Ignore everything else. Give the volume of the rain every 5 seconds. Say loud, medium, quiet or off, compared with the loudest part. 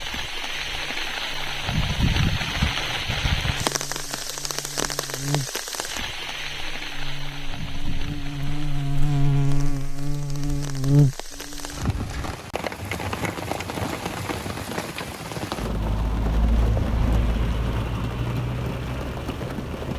loud, medium, medium, loud.